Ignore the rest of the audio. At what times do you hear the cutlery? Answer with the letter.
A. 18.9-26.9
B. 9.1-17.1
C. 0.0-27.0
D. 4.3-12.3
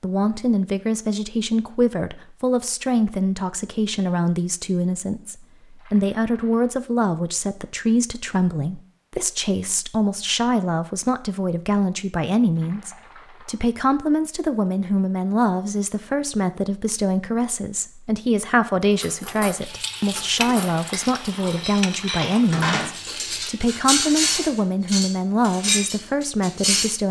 A.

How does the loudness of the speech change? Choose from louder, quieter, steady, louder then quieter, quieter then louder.
steady.